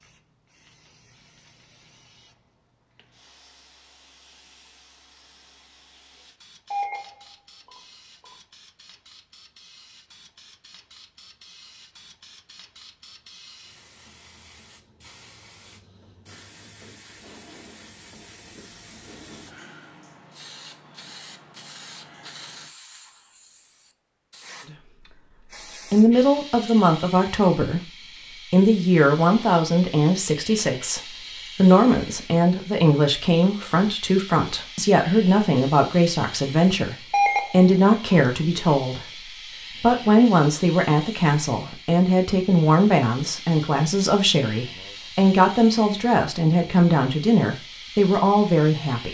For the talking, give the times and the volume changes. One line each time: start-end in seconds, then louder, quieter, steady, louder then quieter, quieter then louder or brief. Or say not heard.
25.9-49.1 steady.